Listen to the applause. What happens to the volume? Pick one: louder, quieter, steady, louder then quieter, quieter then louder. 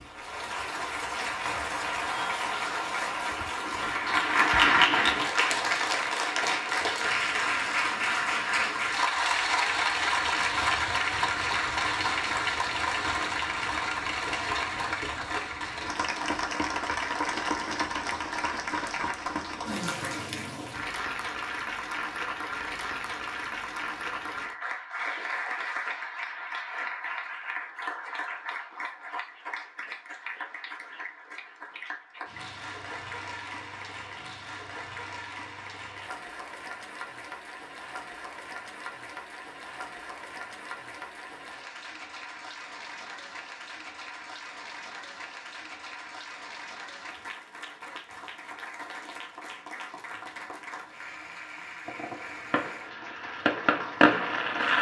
quieter.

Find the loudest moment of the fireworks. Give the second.
54 s.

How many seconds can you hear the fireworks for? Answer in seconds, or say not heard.
3 s.